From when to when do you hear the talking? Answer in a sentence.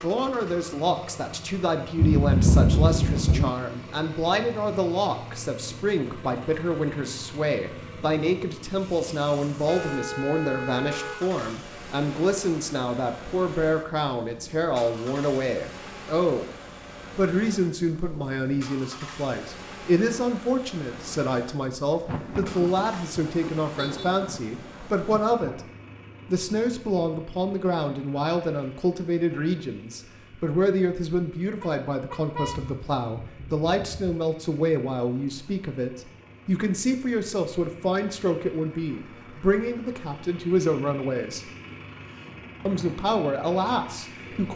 The talking can be heard from 0.0 to 16.5 s, from 17.1 to 25.6 s, from 26.2 to 41.4 s and from 42.6 to 44.5 s.